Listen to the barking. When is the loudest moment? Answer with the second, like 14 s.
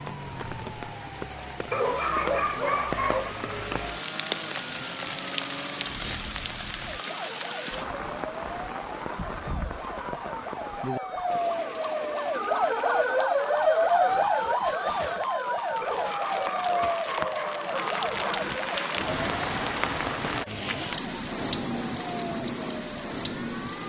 2 s.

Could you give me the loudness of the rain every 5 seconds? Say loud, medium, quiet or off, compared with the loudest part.
loud, loud, medium, loud, loud.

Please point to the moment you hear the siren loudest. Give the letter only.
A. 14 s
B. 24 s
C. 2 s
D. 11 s
A.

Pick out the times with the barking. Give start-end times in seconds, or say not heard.
1.7-3.4, 15.8-18.2.